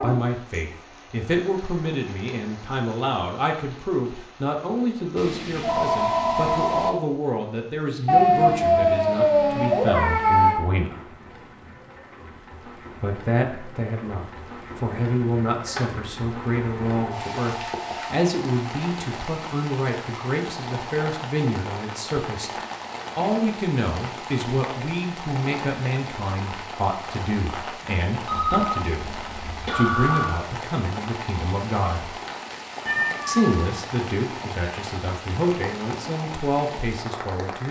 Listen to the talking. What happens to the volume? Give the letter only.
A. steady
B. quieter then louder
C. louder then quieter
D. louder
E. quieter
A.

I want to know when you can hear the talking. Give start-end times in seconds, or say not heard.
0.0-11.1, 13.0-22.5, 23.1-32.1, 33.2-37.6.